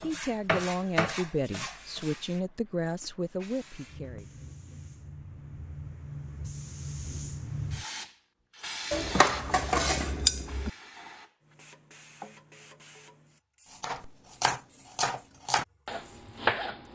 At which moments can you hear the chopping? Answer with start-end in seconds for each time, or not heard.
0.0-2.2, 13.7-16.9.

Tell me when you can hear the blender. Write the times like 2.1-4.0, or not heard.
not heard.